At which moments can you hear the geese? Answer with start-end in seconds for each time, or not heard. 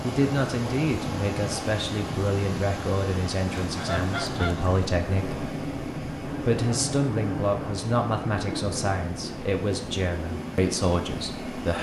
3.5-4.9.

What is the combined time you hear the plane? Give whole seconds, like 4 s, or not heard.
12 s.